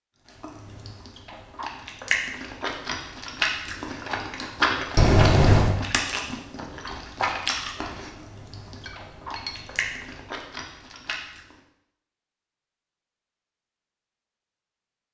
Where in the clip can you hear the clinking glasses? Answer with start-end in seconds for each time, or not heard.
5.0-5.8, 8.0-10.3.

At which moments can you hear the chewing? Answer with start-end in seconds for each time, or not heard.
0.2-11.6.